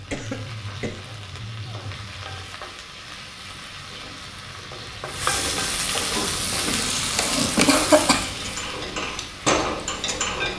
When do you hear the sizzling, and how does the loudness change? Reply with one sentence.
You can hear the sizzling from 0.0 to 10.5 s, getting louder then quieter.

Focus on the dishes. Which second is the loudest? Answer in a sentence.
The volume of the dishes peaks at 10 seconds.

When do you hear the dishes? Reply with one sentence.
The dishes can be heard from 6.2 to 10.5 s.